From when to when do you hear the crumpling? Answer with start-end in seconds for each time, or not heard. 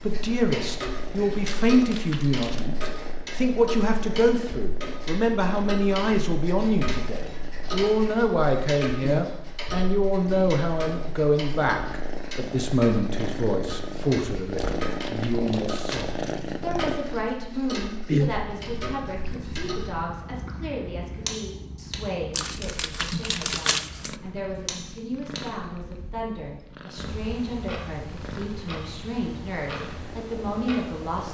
1.4-2.7, 14.6-16.1, 22.3-24.1.